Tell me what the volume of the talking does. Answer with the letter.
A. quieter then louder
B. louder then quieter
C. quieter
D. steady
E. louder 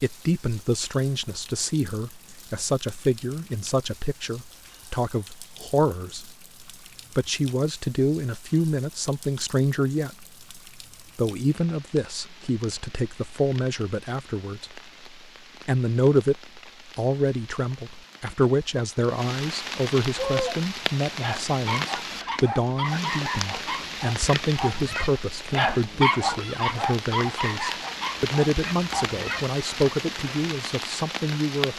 D.